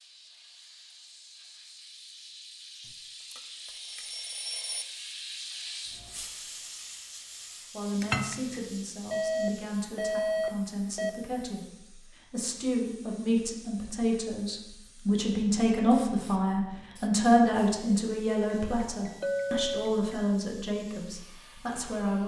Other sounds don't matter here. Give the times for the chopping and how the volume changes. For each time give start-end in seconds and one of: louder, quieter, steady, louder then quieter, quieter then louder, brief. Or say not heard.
not heard.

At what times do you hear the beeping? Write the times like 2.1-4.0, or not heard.
3.3-4.8, 9.1-11.1, 18.4-20.4.